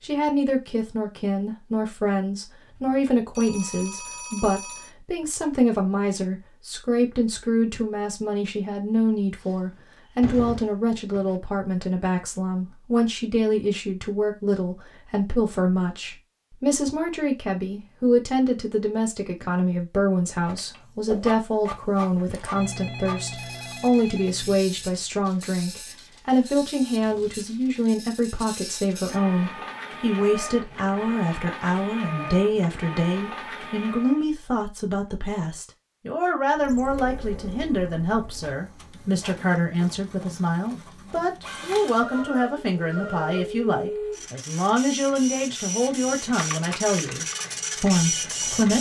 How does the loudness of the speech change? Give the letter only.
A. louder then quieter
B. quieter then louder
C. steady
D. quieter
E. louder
C.